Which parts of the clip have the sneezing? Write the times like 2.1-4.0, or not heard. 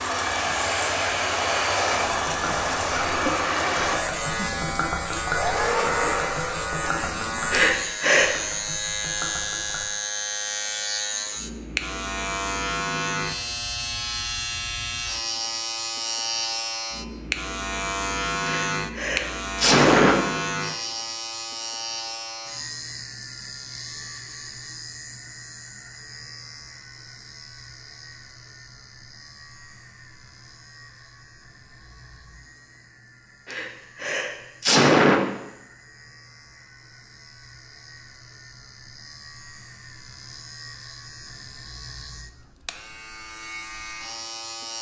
7.5-8.3, 18.4-20.2, 33.5-35.2.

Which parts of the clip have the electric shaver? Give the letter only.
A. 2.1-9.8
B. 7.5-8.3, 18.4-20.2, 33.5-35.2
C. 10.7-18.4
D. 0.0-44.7
D.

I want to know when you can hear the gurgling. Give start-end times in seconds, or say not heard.
2.1-9.8.